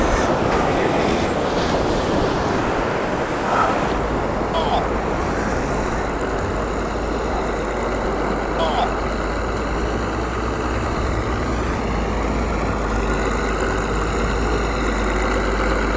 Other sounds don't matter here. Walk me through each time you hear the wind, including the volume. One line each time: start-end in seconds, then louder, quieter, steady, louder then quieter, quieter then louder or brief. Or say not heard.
0.0-15.9 quieter.